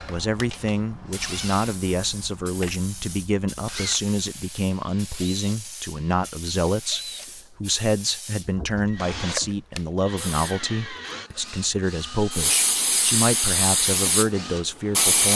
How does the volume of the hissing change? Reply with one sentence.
The loudness of the hissing goes up.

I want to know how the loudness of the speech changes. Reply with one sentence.
The loudness of the speech stays about the same.